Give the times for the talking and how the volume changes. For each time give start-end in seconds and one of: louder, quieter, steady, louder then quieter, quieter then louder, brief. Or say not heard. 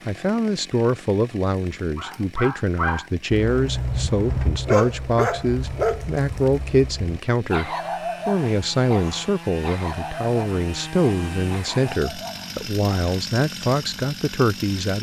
0.1-14.9 steady.